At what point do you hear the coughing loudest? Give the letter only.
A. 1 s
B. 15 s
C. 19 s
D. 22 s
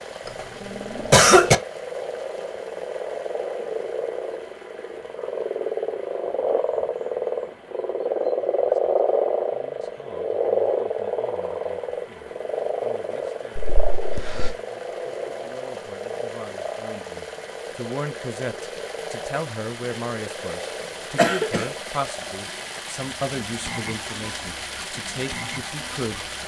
A.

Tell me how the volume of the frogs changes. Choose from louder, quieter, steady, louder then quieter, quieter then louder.
louder then quieter.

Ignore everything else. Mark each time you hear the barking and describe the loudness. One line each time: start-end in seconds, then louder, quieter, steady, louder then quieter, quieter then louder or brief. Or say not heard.
not heard.